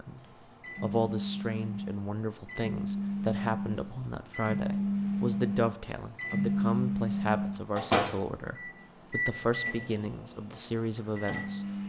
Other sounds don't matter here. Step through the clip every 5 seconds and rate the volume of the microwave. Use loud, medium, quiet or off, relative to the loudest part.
loud, loud, medium.